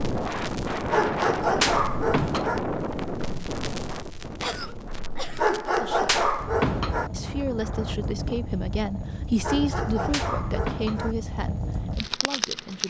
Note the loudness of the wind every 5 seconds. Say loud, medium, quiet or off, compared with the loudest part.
loud, medium, off.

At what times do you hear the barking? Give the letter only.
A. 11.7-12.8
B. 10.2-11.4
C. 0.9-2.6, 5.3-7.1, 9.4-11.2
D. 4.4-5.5
C.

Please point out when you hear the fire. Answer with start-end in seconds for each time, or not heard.
0.0-12.8.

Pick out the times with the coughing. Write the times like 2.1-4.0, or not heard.
4.4-5.5.